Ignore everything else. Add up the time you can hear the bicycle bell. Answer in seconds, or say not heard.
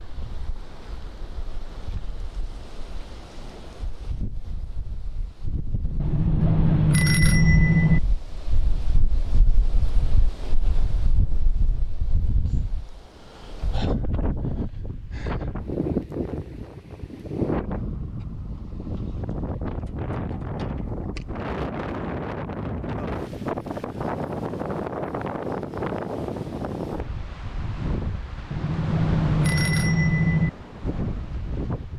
4 s.